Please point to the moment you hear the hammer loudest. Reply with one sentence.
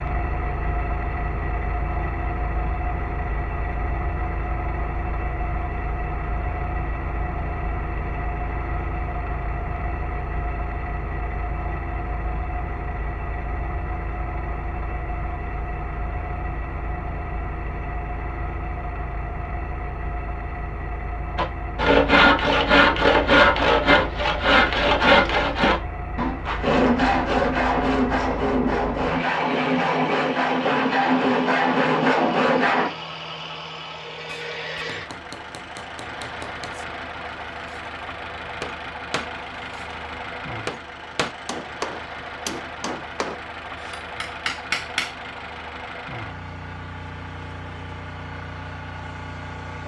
The loudest moment of the hammer is at 45 seconds.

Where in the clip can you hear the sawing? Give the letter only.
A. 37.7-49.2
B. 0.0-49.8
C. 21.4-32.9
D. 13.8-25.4
C.